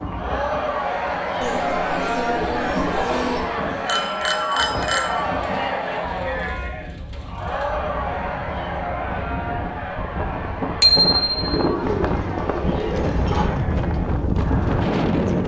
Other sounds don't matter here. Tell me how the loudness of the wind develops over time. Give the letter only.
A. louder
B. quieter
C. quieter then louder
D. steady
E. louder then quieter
A.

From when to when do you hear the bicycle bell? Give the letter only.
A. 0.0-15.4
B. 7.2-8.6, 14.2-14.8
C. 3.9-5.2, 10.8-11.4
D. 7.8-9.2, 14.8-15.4
C.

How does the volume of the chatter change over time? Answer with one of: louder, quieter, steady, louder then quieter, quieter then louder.
quieter.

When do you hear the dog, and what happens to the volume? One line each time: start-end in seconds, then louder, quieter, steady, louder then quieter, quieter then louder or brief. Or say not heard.
not heard.